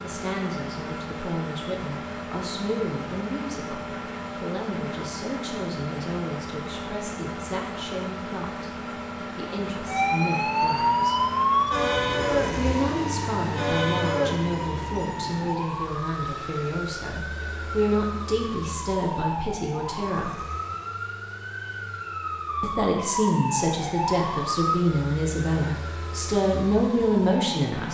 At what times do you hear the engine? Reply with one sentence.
The engine can be heard from 0.0 to 27.9 s.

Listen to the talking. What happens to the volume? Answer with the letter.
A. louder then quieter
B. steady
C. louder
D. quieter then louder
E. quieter
C.